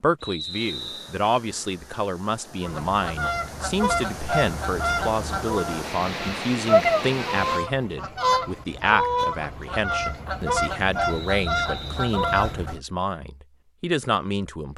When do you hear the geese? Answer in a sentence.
You can hear the geese from 2.6 to 12.8 s.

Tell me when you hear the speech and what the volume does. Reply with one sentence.
You can hear the speech from 0.0 to 14.7 s, at a steady volume.